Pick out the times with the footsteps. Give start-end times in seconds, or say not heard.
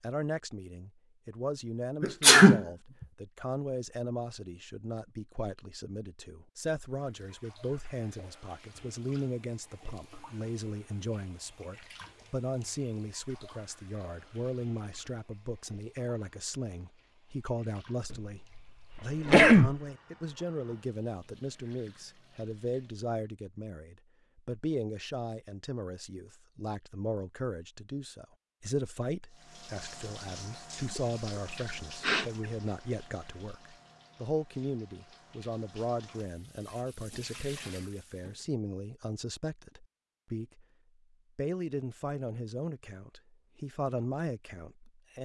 not heard.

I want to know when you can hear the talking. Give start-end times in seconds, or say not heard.
0.0-40.6, 41.4-45.2.